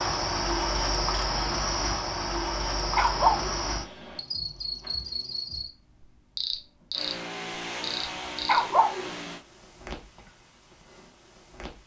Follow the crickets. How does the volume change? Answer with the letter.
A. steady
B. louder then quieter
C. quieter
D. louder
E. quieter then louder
C.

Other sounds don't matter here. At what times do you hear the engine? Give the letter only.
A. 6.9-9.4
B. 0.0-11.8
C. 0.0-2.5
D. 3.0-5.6
A.